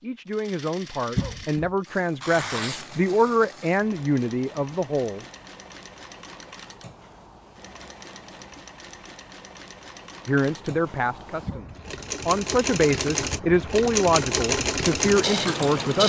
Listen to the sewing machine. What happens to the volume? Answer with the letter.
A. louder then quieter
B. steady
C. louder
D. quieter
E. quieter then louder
C.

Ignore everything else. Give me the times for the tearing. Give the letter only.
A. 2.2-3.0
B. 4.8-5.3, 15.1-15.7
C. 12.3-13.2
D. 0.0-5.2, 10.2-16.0
A.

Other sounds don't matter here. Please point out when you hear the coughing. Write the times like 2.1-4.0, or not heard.
1.1-1.7, 11.4-12.0.